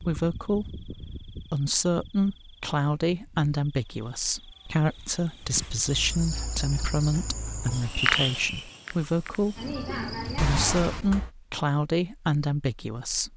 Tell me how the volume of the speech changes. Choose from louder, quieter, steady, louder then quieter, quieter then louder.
steady.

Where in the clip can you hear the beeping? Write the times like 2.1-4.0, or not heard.
10.3-11.3.